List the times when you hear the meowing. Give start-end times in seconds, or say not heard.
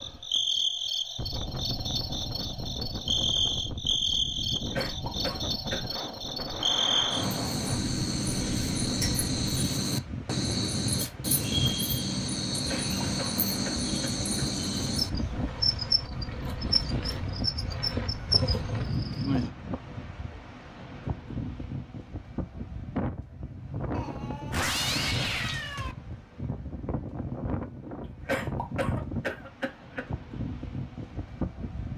23.9-25.9.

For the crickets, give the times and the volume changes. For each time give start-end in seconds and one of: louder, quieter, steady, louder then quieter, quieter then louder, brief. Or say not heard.
0.0-19.5 steady.